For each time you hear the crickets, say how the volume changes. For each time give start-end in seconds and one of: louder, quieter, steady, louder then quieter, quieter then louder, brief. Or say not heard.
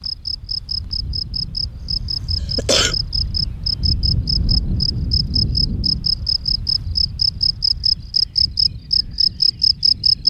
0.0-10.2 louder.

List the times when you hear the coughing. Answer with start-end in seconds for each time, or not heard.
1.8-3.0.